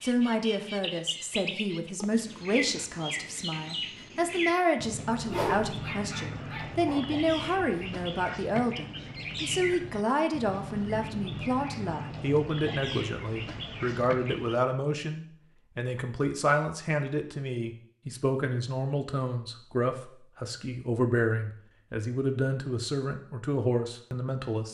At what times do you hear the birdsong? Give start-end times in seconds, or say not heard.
0.0-14.6.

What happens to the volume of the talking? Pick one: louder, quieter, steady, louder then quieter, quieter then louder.
steady.